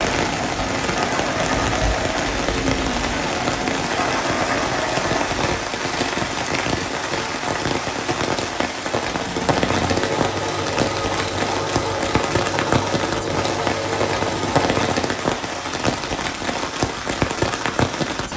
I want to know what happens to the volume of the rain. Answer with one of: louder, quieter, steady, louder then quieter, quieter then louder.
steady.